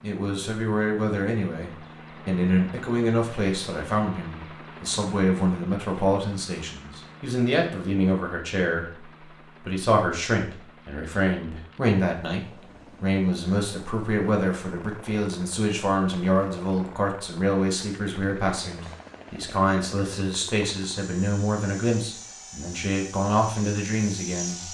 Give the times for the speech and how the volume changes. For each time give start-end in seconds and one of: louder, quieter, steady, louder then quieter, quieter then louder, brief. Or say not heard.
0.0-24.7 steady.